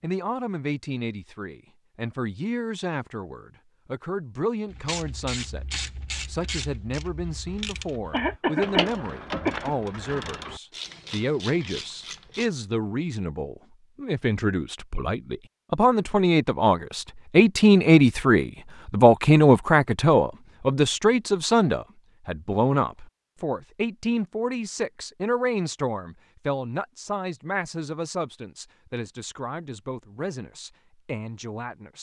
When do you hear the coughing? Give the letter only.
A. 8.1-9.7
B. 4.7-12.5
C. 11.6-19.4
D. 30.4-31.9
A.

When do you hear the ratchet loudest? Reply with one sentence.
The volume of the ratchet peaks at 9 seconds.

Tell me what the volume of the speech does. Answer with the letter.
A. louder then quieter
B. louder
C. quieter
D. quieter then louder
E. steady
A.